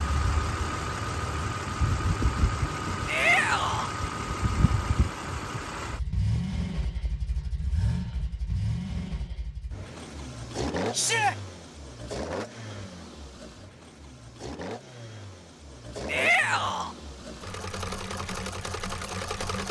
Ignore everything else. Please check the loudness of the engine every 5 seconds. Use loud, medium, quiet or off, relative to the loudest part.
loud, loud, medium, medium.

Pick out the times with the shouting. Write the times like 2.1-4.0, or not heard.
3.0-3.9, 10.9-11.3, 16.1-16.9.